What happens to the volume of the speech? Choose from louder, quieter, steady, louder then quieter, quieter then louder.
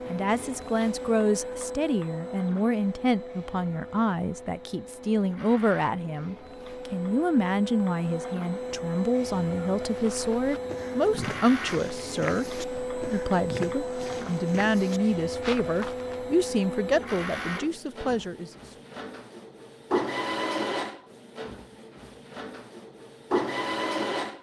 steady.